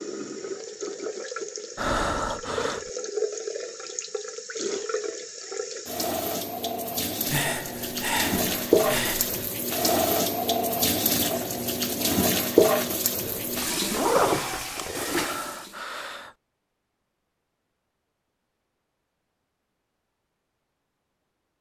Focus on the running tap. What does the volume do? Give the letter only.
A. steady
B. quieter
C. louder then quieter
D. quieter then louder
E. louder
E.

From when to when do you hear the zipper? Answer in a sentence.
The zipper can be heard from 13.2 to 15.2 s.